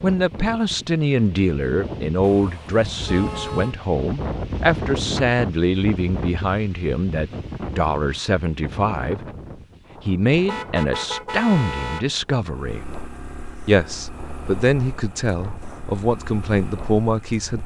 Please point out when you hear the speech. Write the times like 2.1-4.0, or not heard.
0.0-9.2, 10.1-12.8, 13.7-17.6.